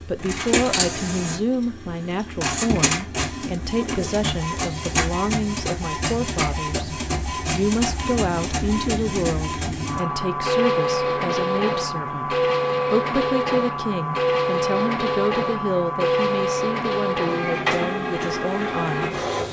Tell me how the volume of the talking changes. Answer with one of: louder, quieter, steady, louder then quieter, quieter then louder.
steady.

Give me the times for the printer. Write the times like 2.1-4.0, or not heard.
0.0-19.4.